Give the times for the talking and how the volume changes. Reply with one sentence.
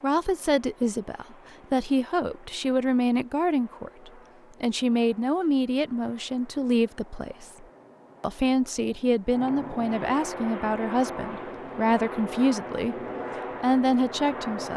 The talking can be heard from 0.0 to 12.9 s, at a steady volume; and briefly from 13.6 to 14.7 s.